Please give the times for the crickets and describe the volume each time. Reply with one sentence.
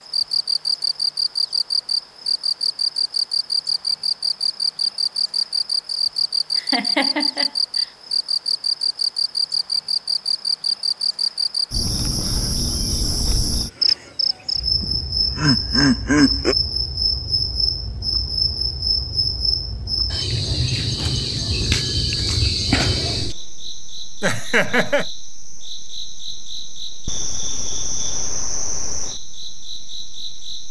You can hear the crickets from 0.0 to 30.6 s, getting quieter.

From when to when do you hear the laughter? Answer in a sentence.
The laughter can be heard from 6.5 to 7.5 s, from 14.8 to 16.6 s and from 24.2 to 25.1 s.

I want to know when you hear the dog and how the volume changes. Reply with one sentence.
You can't hear the dog here.